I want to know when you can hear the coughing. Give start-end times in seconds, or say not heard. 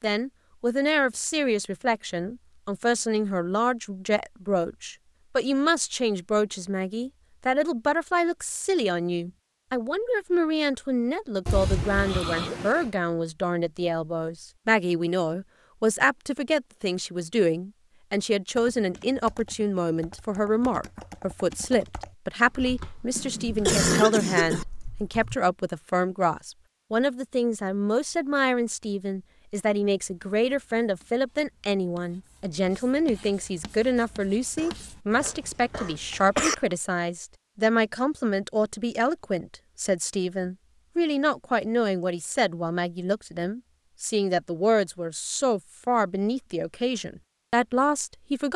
11.4-12.9, 23.1-24.6, 34.5-36.5.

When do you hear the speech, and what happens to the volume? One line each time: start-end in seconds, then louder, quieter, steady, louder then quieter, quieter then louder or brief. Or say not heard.
0.0-48.5 steady.